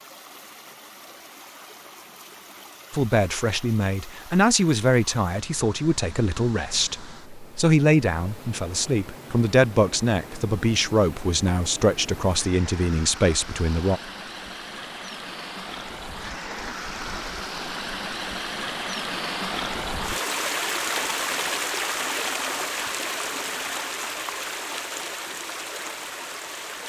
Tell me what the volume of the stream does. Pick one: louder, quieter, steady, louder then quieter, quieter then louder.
louder.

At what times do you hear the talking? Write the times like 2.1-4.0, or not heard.
2.9-14.0.